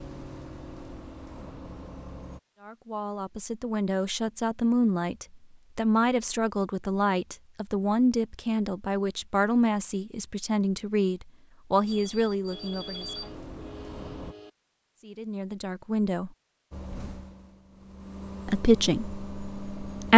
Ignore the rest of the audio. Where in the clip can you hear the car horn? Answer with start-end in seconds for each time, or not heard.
12.5-14.5.